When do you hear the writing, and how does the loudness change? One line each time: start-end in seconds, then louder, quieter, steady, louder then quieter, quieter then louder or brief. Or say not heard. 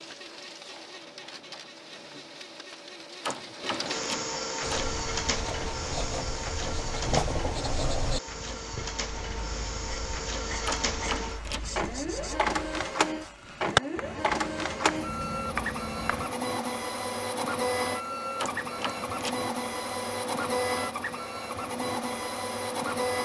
4.6-16.3 quieter then louder.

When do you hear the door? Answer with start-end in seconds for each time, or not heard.
3.2-4.8, 10.7-11.7, 18.4-19.4.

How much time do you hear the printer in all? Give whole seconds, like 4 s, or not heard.
23 s.